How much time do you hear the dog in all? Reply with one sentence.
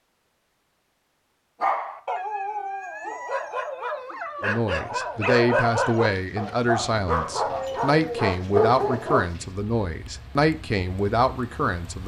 The dog can be heard for 8 seconds in total.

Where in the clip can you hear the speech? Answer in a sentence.
The speech can be heard from 4.4 to 12.0 s.